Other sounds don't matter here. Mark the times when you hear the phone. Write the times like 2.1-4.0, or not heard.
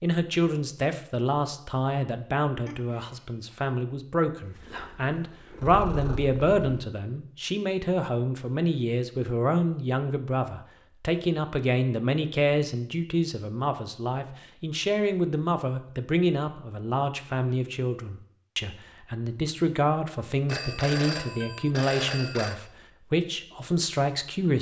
2.6-3.5, 20.4-22.6.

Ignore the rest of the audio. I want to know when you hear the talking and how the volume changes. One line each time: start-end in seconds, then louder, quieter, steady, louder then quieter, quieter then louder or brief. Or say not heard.
0.0-24.5 steady.